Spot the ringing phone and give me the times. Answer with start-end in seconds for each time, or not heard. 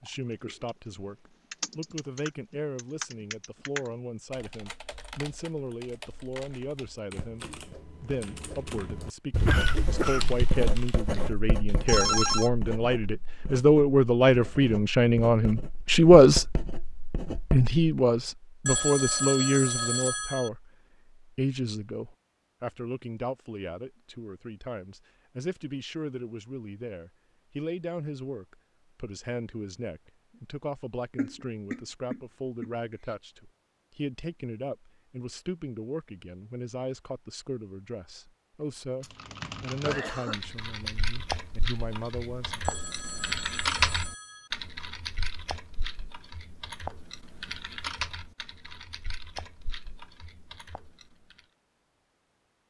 11.8-12.5, 18.6-20.5, 42.6-44.5.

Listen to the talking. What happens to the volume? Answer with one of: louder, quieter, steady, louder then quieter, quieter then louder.
louder then quieter.